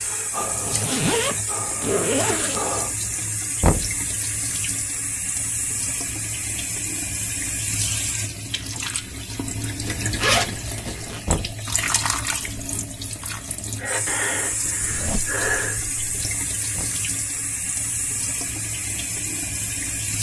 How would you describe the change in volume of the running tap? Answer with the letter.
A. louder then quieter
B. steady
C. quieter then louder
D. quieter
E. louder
B.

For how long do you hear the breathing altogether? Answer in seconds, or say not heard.
5 s.